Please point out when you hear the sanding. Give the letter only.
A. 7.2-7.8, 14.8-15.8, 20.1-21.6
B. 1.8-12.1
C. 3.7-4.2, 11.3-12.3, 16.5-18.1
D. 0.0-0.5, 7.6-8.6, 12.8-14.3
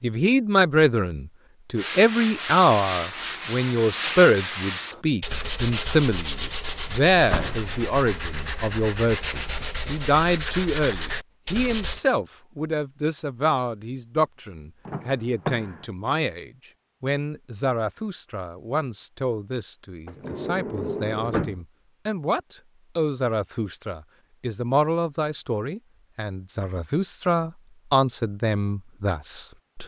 B.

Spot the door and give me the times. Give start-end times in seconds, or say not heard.
7.2-7.8, 14.8-15.8, 20.1-21.6.